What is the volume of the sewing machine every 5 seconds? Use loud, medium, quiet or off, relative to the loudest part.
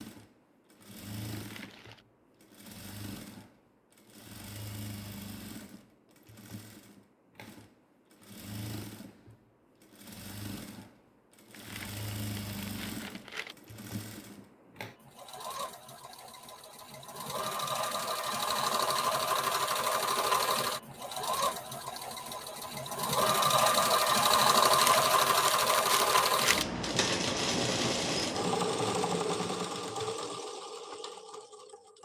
quiet, quiet, quiet, medium, loud, loud, quiet.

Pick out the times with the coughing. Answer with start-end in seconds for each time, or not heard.
not heard.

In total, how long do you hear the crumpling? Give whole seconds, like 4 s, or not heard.
5 s.